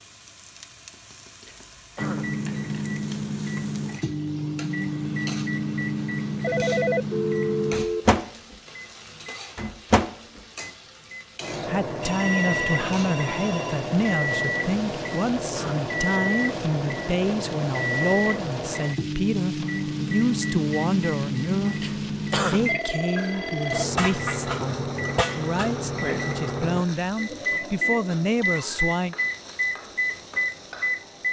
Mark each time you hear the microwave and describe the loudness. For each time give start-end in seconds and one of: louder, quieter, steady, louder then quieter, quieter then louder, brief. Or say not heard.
1.9-31.2 steady.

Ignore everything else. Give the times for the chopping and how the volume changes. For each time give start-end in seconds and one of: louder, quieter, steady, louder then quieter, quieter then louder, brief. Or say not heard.
not heard.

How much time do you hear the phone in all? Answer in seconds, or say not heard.
5 s.